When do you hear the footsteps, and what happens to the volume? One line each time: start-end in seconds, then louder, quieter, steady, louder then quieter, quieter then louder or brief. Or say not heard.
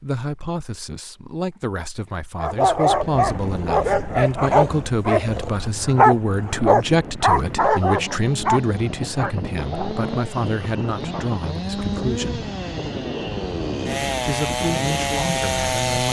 not heard.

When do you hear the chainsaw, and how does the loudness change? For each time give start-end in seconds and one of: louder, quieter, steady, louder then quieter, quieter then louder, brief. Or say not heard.
7.5-16.0 louder.